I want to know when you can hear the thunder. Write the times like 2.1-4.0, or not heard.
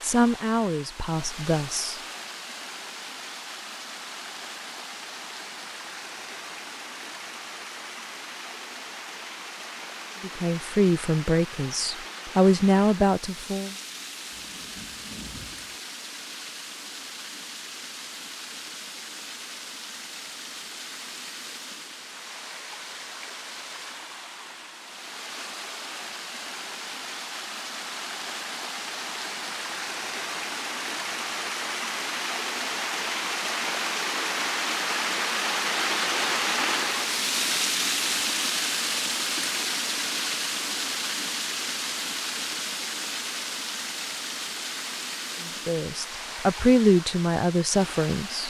14.3-15.8.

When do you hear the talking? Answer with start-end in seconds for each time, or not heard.
0.0-1.9, 10.2-13.8, 45.5-48.4.